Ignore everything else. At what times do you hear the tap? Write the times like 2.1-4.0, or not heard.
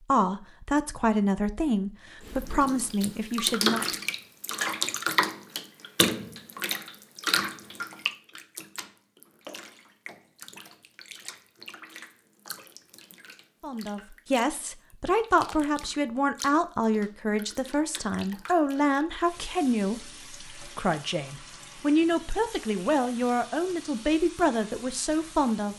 2.2-25.7.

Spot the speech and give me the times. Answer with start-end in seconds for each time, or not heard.
0.1-3.9, 13.6-25.7.